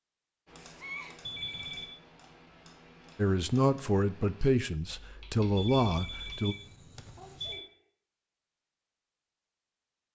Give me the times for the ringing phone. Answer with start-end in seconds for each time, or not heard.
1.2-1.9, 5.5-7.6.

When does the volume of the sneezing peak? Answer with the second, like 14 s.
1 s.